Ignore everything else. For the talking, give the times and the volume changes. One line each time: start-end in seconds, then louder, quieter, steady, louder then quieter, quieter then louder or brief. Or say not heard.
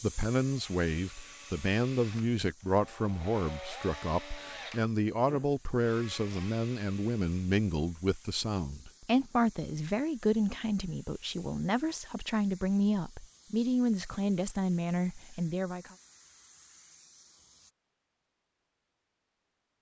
0.0-15.9 steady.